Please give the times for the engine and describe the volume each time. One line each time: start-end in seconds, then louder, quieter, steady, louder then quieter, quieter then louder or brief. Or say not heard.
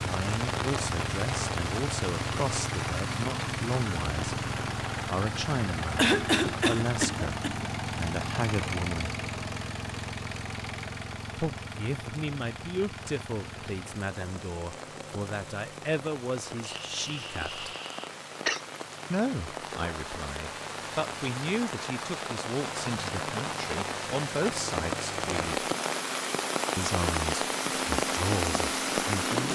0.0-29.4 quieter then louder.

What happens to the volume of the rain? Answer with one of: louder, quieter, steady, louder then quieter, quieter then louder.
quieter then louder.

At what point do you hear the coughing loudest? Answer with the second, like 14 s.
6 s.